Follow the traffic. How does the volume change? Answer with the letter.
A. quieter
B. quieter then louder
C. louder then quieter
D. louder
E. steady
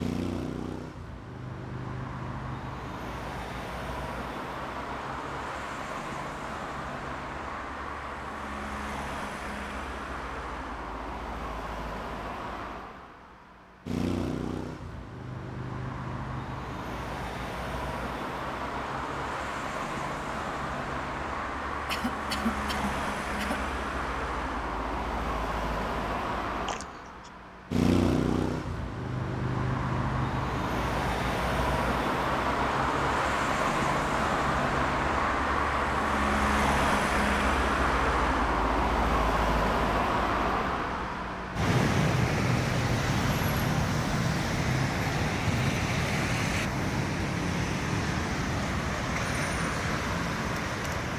D.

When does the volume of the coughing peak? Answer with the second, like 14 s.
22 s.